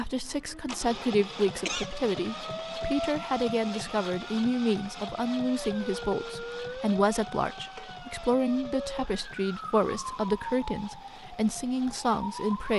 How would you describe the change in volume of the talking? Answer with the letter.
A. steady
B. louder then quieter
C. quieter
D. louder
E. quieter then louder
A.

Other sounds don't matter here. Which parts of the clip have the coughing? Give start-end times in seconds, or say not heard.
1.6-2.1.